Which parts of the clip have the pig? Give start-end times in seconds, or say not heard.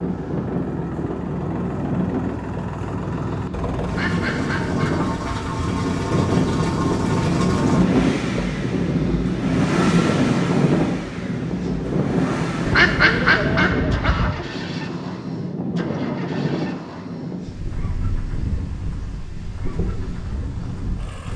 not heard.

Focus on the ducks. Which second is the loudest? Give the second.
13 s.